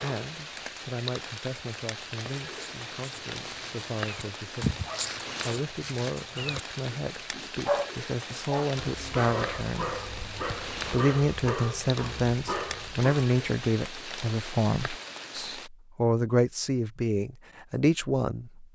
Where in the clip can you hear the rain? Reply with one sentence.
The rain can be heard from 0.0 to 15.7 s.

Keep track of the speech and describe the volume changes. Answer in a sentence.
The loudness of the speech goes up.